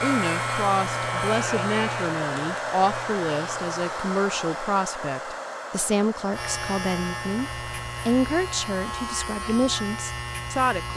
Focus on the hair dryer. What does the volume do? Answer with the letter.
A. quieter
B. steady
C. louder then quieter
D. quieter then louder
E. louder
A.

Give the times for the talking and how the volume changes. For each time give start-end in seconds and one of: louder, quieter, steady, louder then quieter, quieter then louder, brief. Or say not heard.
0.0-10.9 steady.